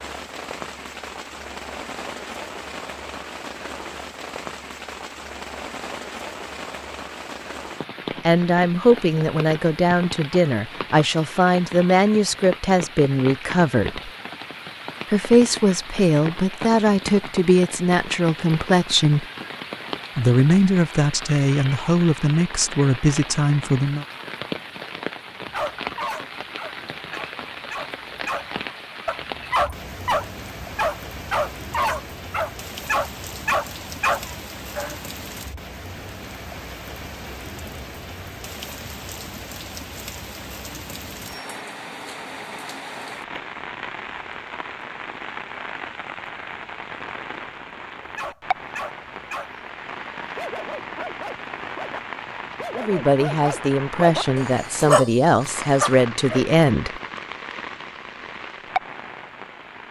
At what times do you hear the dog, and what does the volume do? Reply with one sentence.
You can hear the dog from 25.5 to 35.0 s, getting louder; and from 48.0 to 56.5 s, getting louder.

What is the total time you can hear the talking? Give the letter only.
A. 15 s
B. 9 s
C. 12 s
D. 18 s
D.